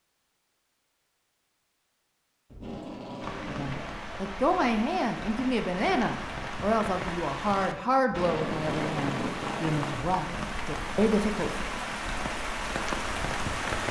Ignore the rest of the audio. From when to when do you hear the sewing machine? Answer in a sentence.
The sewing machine can't be heard in this clip.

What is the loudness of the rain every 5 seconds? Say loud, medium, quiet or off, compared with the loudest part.
medium, loud, loud.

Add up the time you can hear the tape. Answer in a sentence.
You can hear the tape for 3 seconds altogether.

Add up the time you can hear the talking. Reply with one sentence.
You can hear the talking for 8 seconds altogether.